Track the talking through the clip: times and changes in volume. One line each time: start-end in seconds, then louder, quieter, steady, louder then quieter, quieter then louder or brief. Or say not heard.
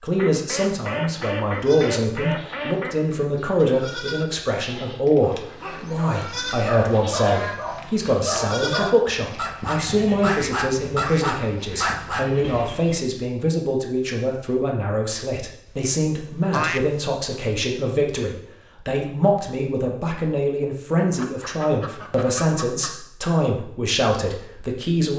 0.0-25.1 steady.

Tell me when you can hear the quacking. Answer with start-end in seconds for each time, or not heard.
0.1-3.0, 5.2-8.2, 10.2-12.0, 15.7-16.8, 21.1-22.9.